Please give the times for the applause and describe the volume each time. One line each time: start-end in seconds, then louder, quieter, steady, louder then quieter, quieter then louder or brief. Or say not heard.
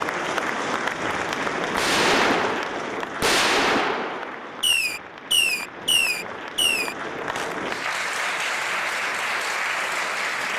0.0-10.5 quieter then louder.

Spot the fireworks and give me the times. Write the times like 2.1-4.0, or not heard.
1.8-7.5.